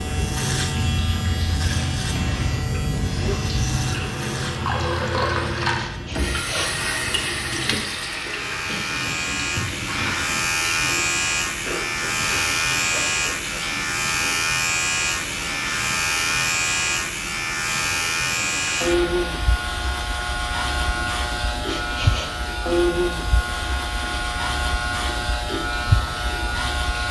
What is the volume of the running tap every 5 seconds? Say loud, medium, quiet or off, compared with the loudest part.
medium, loud, medium, medium, medium, medium.